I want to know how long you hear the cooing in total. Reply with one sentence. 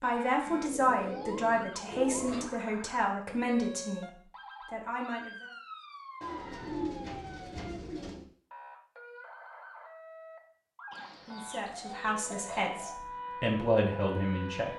You can hear the cooing for 6 seconds altogether.